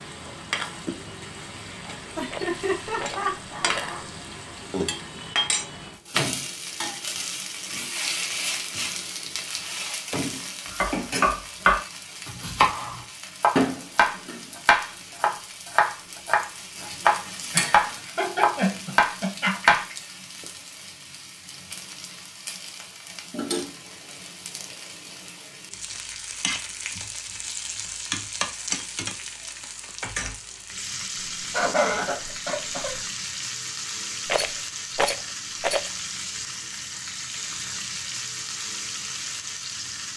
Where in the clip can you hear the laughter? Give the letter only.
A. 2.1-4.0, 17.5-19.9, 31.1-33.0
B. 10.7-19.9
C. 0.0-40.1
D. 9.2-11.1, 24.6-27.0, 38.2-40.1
A.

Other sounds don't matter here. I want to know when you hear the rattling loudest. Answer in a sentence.
The loudest moment of the rattling is at 35 seconds.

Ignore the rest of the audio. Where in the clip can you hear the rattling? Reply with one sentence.
The rattling can be heard from 2.2 to 3.9 s and from 34.2 to 35.9 s.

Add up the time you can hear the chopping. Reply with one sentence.
The chopping can be heard for 9 seconds in total.